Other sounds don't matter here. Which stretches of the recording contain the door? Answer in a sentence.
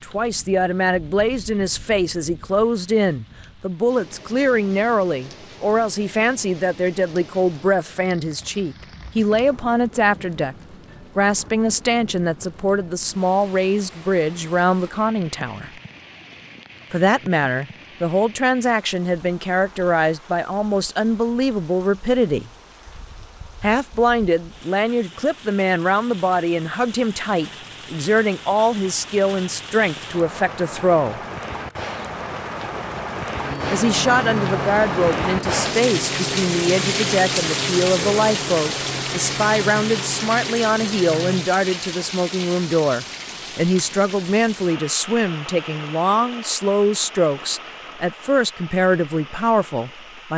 You can't hear the door here.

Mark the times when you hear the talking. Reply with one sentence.
You can hear the talking from 0.0 to 15.7 s, from 16.9 to 22.5 s, from 23.6 to 31.2 s and from 33.7 to 50.3 s.